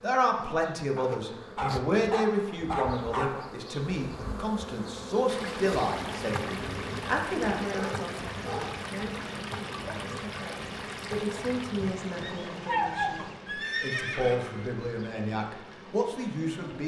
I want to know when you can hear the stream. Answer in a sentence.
You can hear the stream from 5.2 to 16.8 s.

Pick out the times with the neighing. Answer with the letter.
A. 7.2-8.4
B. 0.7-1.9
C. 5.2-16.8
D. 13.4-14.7
D.